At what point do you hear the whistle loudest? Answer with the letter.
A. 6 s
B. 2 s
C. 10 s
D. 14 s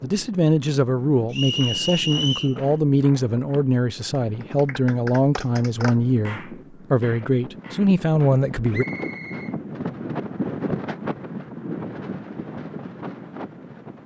B.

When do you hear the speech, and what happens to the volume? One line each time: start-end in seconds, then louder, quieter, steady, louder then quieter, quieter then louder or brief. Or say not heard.
0.0-8.8 steady.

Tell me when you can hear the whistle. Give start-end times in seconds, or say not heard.
1.3-2.5, 8.7-9.6.